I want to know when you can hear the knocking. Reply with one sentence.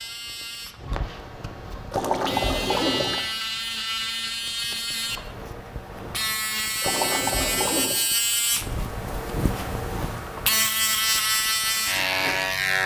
The knocking can't be heard in this clip.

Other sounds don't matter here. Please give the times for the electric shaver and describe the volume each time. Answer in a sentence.
The electric shaver can be heard from 0.0 to 12.8 s, getting louder.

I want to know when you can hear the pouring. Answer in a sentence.
The pouring can be heard from 1.9 to 3.2 s and from 6.8 to 8.0 s.